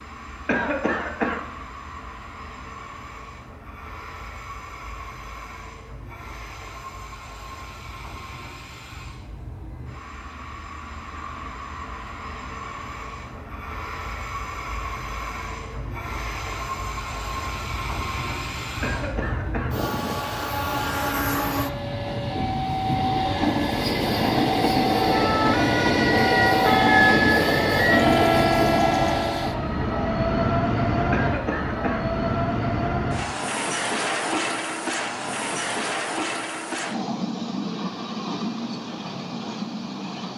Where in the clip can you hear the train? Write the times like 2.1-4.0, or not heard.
0.0-40.3.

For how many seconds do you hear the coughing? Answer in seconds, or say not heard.
3 s.